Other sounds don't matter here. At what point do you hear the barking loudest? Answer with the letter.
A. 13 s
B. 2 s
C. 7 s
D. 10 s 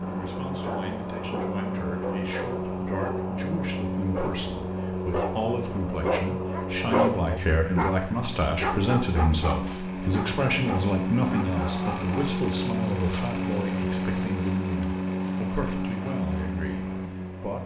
C.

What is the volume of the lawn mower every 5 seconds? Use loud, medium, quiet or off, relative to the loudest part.
loud, medium, loud, loud.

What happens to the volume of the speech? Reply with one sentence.
The loudness of the speech goes up, then down.